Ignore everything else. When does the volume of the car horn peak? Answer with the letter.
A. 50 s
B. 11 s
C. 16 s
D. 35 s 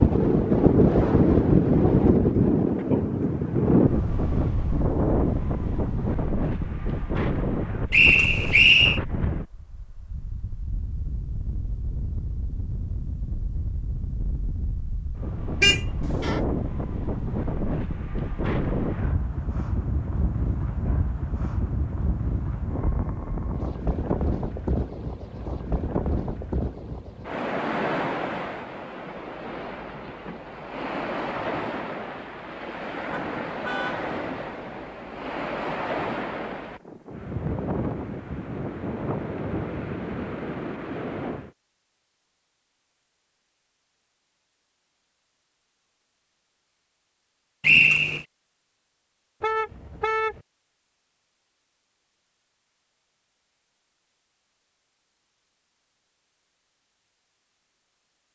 C.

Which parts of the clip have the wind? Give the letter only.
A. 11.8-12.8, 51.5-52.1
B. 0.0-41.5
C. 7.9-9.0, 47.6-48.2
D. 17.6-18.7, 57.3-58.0
B.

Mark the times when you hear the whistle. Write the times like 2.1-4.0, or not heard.
7.9-9.0, 47.6-48.2.